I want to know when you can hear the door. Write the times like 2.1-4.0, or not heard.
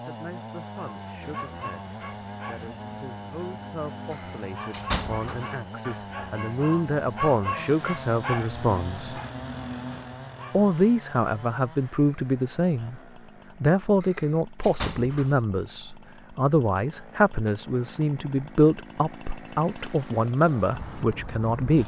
4.1-5.5, 14.0-15.4.